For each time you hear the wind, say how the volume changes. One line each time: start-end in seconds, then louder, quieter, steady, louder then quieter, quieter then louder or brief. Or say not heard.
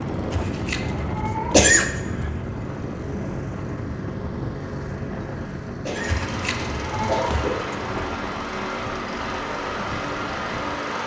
0.0-10.8 quieter.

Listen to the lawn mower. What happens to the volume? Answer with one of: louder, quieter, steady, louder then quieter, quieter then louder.
louder.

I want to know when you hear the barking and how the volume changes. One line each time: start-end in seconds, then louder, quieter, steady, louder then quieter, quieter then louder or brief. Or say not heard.
not heard.